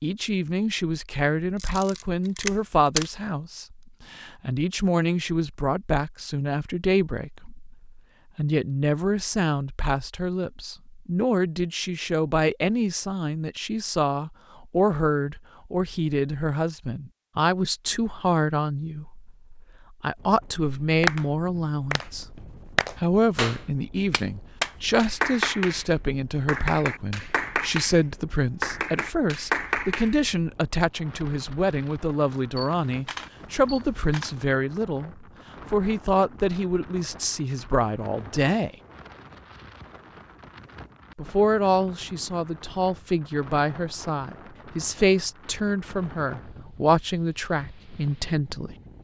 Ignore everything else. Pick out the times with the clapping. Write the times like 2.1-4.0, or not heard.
20.8-25.9, 26.4-28.0, 28.6-30.1.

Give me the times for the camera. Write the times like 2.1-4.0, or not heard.
1.6-3.1, 32.5-34.4.